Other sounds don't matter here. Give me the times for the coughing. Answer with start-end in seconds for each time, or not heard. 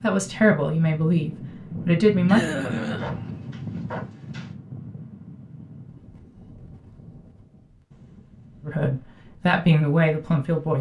2.2-3.2.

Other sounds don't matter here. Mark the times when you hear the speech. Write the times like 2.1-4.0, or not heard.
0.0-2.4, 8.7-10.7.